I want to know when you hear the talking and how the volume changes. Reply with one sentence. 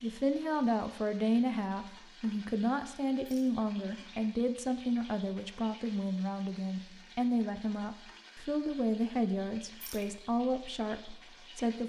The talking can be heard from 0.0 to 11.8 s, at a steady volume.